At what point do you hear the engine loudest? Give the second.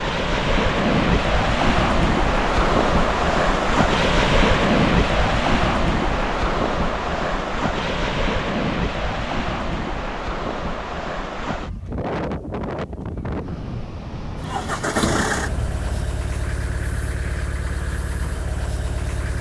15 s.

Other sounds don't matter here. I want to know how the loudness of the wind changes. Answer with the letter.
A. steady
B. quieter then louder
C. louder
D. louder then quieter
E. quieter
E.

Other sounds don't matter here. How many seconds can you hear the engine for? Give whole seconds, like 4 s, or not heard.
5 s.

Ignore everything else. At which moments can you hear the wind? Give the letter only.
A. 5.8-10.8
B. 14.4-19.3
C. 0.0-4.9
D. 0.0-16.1
D.